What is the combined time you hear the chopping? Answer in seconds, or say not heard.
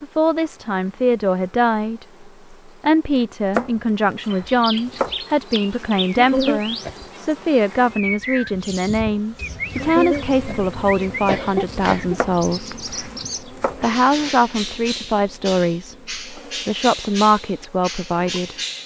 3 s.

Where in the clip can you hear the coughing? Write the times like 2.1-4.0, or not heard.
6.2-7.0, 9.8-12.2.